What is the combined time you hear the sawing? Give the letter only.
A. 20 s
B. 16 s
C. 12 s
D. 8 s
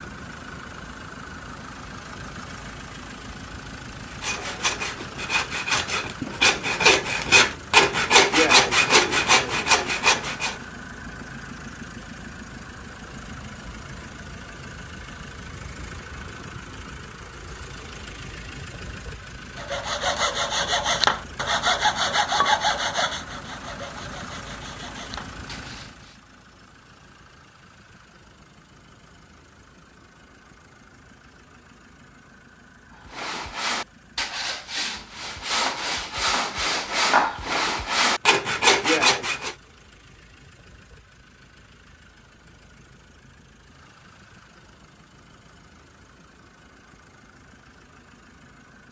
A.